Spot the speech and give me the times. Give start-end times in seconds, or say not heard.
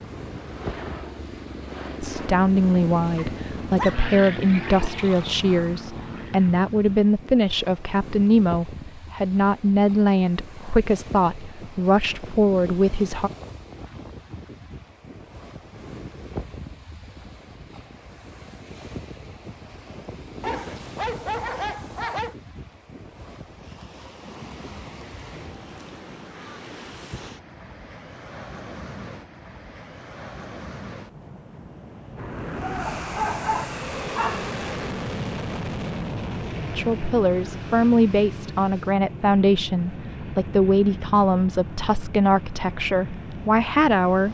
2.0-13.3, 36.8-44.2.